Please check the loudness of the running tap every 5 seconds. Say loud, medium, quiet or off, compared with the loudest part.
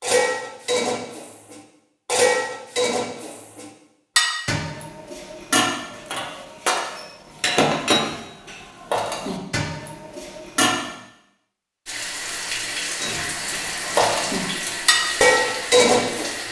off, off, loud, loud.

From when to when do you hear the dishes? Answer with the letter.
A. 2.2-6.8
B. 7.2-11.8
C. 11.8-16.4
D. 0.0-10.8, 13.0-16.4
D.